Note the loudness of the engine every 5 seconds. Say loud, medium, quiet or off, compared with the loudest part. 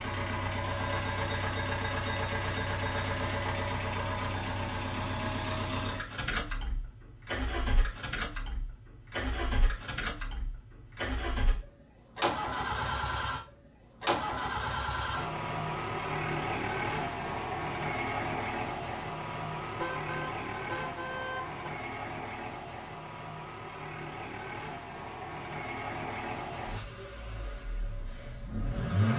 loud, loud, loud, loud, medium, loud.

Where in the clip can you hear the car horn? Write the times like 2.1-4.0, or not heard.
19.8-21.6.